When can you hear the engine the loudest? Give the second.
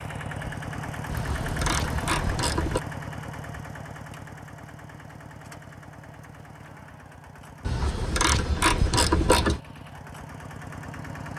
2 s.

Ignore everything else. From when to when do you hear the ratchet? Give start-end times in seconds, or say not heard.
1.1-2.8, 7.7-9.6.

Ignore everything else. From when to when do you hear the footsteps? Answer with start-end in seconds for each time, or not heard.
not heard.